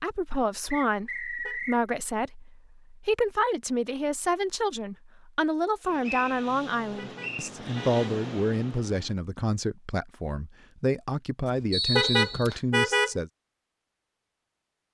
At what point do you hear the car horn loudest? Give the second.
13 s.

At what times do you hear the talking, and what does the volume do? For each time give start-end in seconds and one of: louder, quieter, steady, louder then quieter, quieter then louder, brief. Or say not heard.
0.0-13.3 steady.